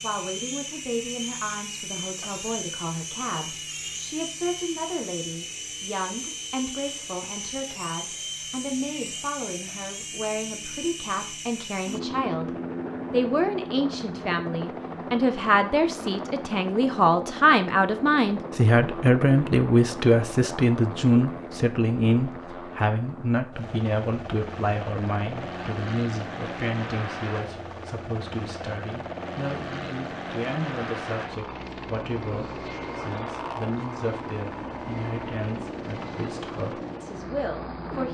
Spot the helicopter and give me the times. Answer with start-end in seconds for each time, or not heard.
0.0-38.0.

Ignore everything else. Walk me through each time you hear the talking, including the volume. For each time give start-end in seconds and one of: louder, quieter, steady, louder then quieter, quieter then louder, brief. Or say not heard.
0.0-12.5 steady
13.1-38.0 quieter.